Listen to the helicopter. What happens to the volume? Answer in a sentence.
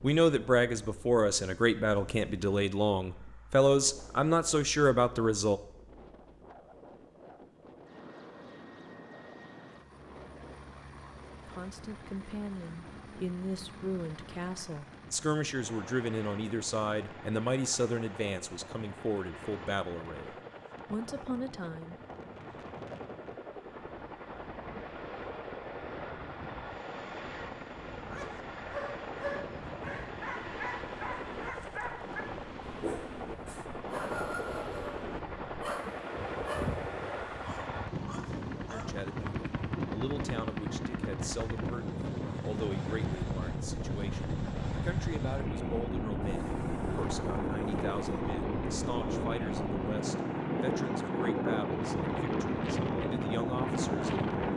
The loudness of the helicopter goes up.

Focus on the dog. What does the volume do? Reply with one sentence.
The volume of the dog stays about the same.